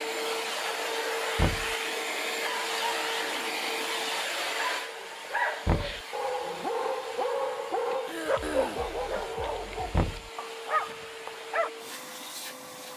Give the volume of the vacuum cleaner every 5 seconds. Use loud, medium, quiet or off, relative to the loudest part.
loud, medium, medium.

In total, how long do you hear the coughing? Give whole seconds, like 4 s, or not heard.
2 s.